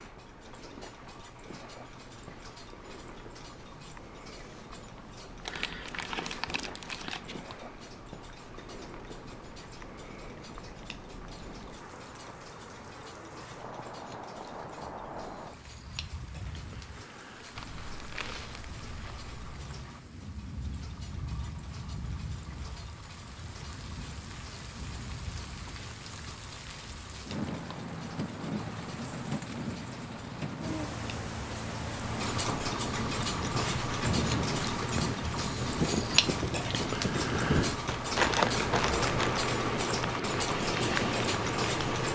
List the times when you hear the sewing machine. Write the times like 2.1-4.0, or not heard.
not heard.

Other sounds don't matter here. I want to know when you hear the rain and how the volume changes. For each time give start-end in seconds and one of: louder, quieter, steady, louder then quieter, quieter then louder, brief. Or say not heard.
0.0-42.0 louder.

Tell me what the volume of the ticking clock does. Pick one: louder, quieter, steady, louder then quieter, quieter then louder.
louder.